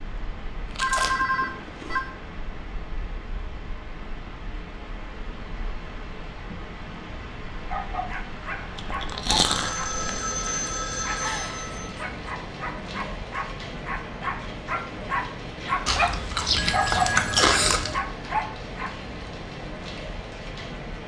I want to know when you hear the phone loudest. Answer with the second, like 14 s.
1 s.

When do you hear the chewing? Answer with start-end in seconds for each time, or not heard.
0.8-2.0, 8.8-9.9, 15.8-18.0.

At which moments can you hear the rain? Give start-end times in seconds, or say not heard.
0.0-21.0.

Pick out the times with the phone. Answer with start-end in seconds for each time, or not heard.
0.8-2.0, 9.4-11.9, 16.5-17.8.